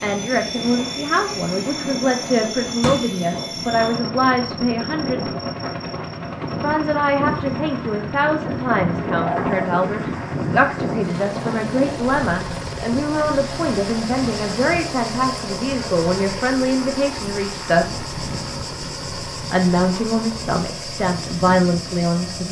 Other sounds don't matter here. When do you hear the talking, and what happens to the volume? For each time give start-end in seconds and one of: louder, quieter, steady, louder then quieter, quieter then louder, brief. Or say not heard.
0.0-5.3 steady
6.6-18.1 steady
19.5-22.4 brief.